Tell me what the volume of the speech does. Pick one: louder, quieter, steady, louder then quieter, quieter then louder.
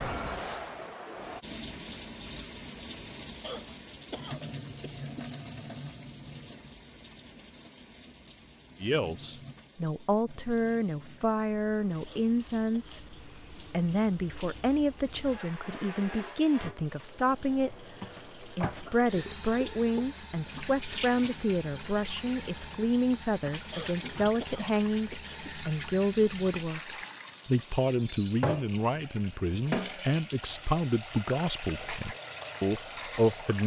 steady.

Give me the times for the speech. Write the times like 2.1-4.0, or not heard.
8.8-33.6.